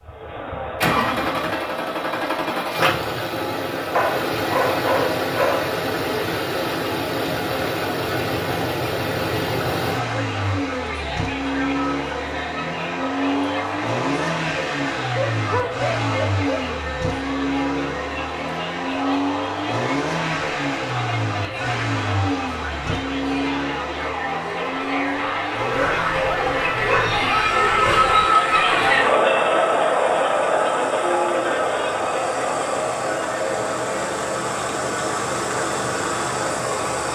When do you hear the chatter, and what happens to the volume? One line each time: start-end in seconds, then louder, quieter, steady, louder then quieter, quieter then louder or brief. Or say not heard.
0.0-37.1 louder.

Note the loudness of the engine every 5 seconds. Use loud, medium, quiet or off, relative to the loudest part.
loud, loud, loud, loud, loud, medium, medium, loud.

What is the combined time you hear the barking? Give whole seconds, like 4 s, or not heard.
6 s.